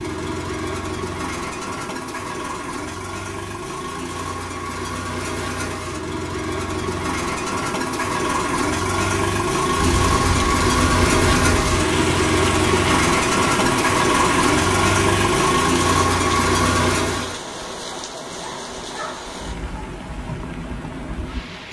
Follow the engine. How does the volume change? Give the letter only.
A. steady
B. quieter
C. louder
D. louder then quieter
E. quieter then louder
C.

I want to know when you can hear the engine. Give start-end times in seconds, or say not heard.
0.0-17.4.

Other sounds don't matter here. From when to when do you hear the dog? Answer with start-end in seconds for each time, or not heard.
not heard.